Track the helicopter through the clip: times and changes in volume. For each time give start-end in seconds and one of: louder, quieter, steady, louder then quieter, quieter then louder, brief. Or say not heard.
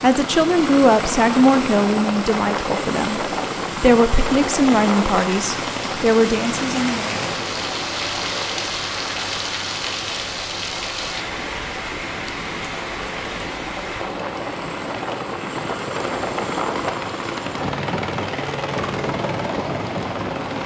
0.0-20.6 quieter then louder.